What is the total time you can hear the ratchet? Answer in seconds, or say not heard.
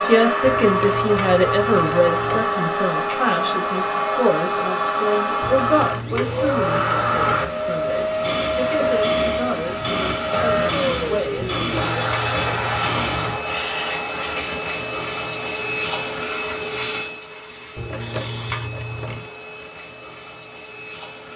8 s.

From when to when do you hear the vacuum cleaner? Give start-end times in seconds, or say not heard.
0.0-21.3.